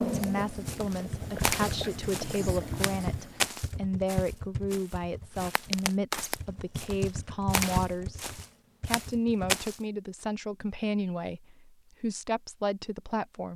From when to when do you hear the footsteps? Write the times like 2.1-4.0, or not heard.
0.1-9.8.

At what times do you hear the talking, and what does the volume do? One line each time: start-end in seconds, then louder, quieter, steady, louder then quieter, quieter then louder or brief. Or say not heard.
0.0-13.5 steady.